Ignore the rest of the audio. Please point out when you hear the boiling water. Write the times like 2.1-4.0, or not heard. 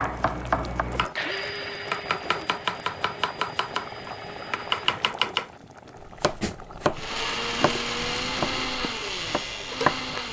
0.0-10.2.